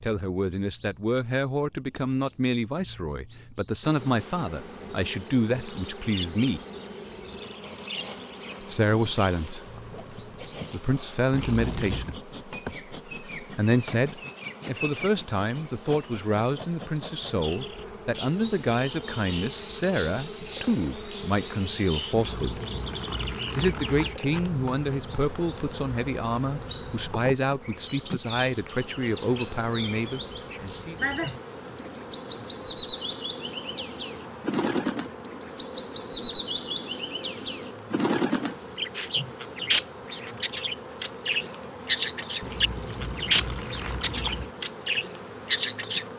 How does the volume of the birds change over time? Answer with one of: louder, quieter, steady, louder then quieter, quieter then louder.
louder.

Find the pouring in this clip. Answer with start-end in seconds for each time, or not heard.
11.3-12.2, 22.1-24.2, 42.4-44.5.